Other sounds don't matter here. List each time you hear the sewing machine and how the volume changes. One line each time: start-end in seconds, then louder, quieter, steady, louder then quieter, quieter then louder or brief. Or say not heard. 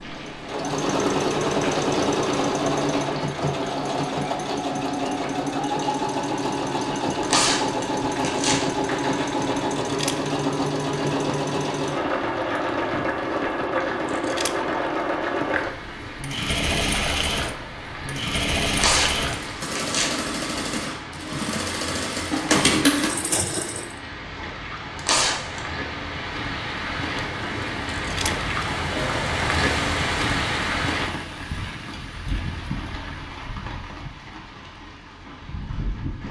0.0-24.0 steady.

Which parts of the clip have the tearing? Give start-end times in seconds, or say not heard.
7.2-8.7, 18.7-20.2, 24.9-25.6.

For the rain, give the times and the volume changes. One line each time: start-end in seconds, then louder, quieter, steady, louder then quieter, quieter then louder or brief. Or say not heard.
0.0-36.2 louder.